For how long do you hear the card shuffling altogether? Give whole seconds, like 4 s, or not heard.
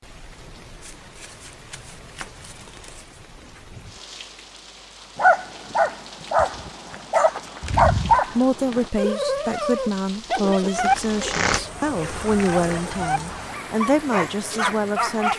7 s.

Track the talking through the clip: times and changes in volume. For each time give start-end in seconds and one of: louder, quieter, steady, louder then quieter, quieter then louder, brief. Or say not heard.
8.2-15.3 steady.